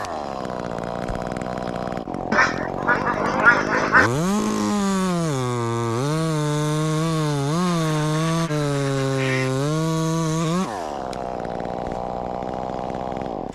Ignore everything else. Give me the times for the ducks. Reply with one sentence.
The ducks can be heard from 2.3 to 4.1 s and from 7.7 to 9.5 s.